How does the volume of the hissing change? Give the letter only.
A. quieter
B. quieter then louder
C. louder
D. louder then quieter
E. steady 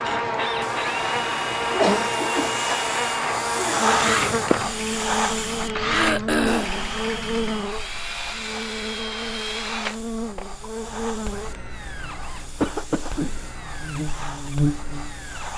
D.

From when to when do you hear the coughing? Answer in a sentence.
You can hear the coughing from 1.6 to 2.5 s, from 5.9 to 6.8 s and from 12.6 to 13.5 s.